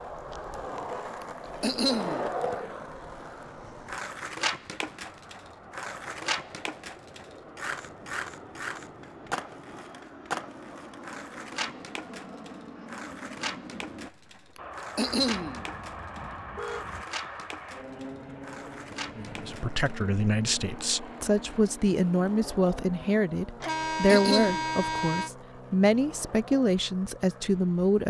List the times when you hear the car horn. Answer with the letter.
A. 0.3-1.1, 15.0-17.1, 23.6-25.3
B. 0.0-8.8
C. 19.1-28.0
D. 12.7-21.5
A.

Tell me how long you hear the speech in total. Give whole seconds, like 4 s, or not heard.
9 s.